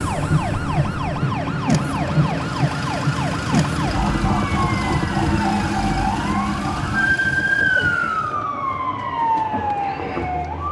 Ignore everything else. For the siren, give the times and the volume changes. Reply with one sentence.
You can hear the siren from 0.0 to 10.6 s, at a steady volume.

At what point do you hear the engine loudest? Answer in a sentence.
The volume of the engine peaks at 5 seconds.